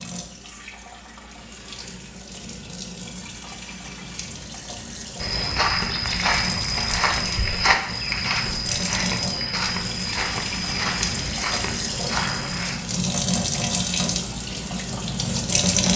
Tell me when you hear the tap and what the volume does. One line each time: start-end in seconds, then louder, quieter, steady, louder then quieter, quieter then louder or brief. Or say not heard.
0.0-15.9 louder.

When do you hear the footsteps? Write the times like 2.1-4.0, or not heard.
5.2-12.8.